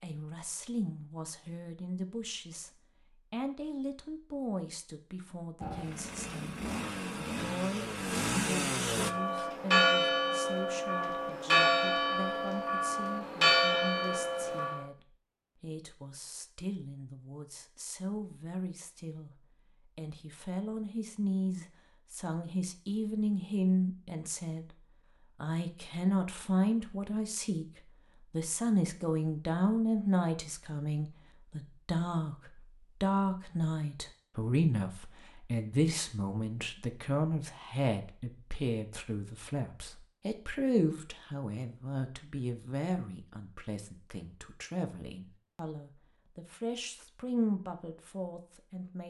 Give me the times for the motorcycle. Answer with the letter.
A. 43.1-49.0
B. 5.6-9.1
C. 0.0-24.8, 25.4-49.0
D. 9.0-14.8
B.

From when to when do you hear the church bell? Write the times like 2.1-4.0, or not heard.
9.0-14.8.